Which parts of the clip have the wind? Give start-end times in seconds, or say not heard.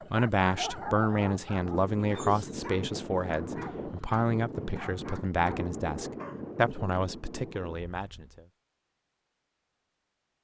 0.0-8.4.